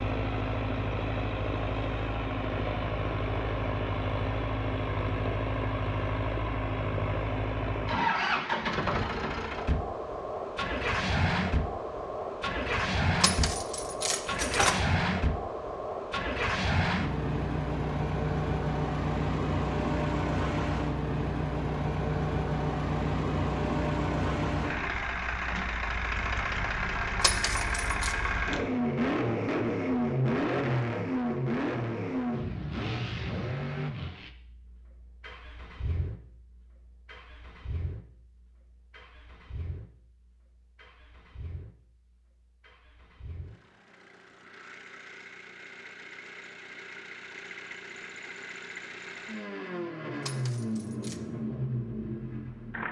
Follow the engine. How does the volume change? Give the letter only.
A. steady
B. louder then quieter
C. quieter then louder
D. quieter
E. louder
D.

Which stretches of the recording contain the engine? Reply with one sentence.
You can hear the engine from 0.0 to 52.8 s.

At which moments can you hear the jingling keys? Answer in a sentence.
The jingling keys can be heard from 13.2 to 14.8 s, from 27.2 to 28.1 s and from 50.2 to 51.2 s.